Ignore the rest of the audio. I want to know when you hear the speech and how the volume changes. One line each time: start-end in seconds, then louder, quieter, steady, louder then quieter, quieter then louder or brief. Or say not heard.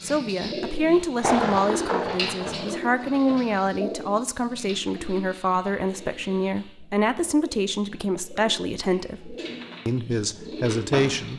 0.0-11.3 steady.